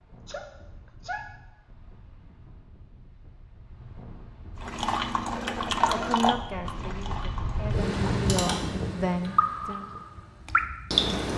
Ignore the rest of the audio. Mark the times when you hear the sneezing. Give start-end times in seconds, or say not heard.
0.2-1.2, 5.8-6.2.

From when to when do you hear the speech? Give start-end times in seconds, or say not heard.
5.9-9.8.